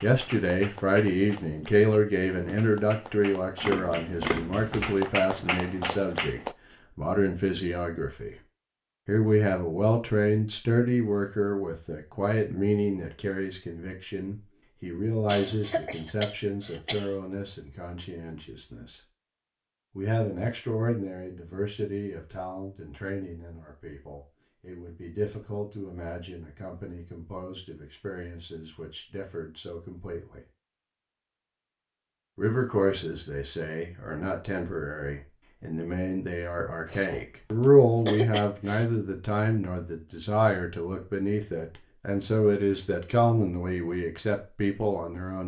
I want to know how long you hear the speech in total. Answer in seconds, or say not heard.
42 s.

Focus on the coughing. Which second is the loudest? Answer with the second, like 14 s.
38 s.